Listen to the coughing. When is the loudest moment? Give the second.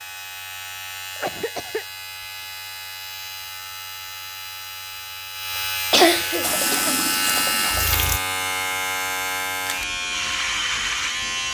6 s.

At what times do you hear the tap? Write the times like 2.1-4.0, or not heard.
6.4-8.2.